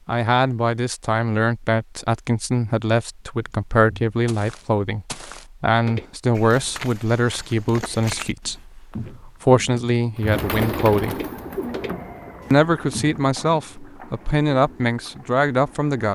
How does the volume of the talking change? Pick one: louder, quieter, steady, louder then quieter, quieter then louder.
steady.